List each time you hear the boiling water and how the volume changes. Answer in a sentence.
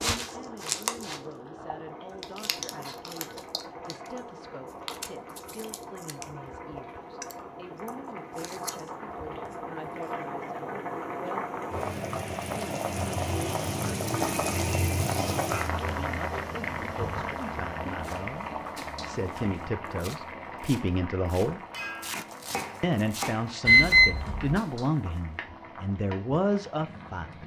The boiling water can be heard from 0.0 to 27.4 s, getting louder then quieter.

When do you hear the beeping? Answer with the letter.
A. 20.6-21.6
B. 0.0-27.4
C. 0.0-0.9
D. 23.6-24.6
D.